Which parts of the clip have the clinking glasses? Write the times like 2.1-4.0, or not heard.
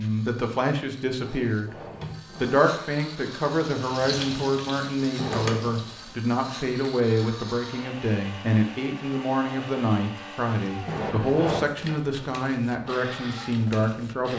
not heard.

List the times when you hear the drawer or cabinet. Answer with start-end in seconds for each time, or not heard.
1.2-2.6, 5.2-5.8, 10.8-11.7.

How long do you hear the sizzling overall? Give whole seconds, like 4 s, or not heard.
3 s.